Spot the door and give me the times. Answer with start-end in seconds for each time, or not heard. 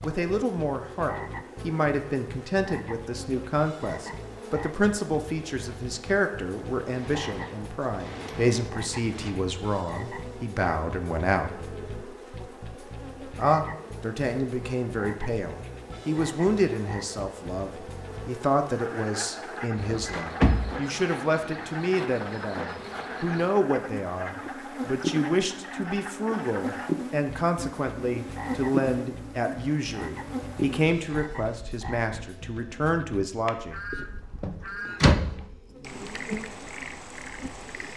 7.0-9.3, 19.8-20.7, 34.4-35.4.